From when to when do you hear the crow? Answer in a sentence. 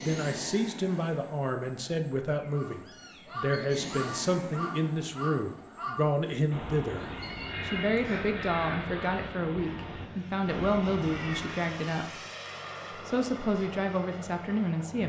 The crow can be heard from 2.5 to 11.6 s.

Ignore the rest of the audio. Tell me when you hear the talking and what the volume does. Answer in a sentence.
The talking can be heard from 0.0 to 12.2 s, at a steady volume; and briefly from 12.9 to 15.0 s.